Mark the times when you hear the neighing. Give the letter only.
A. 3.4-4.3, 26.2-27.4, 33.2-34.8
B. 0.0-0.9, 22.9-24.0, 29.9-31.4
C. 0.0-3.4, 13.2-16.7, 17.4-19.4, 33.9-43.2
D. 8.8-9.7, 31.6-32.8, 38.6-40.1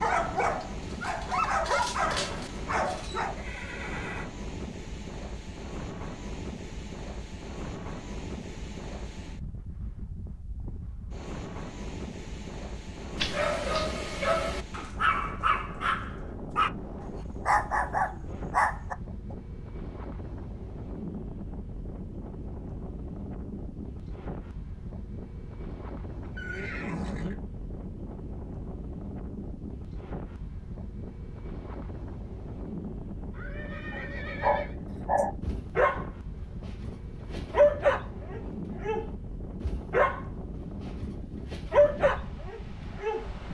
A.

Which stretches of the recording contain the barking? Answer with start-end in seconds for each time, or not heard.
0.0-3.4, 13.2-16.7, 17.4-19.4, 33.9-43.2.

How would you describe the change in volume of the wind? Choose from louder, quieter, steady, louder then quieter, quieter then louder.
steady.